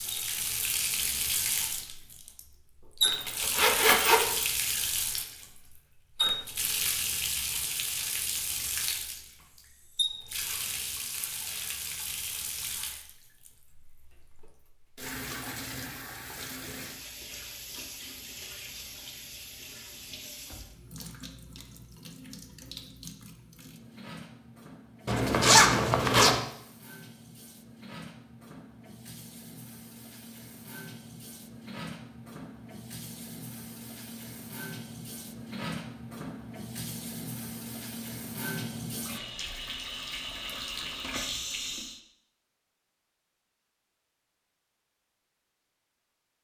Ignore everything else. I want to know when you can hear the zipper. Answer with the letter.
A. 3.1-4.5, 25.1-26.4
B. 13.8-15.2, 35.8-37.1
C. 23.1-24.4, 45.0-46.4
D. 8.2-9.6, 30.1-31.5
A.